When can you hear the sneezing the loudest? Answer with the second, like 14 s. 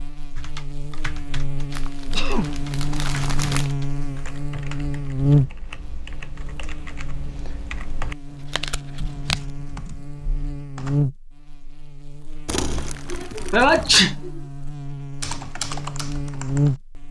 14 s.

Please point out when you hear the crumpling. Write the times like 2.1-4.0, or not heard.
1.7-3.8, 8.2-9.4, 12.4-14.1.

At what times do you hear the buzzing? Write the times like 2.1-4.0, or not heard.
0.0-17.0.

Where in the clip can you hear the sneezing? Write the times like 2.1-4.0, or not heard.
2.0-3.5, 13.1-14.4.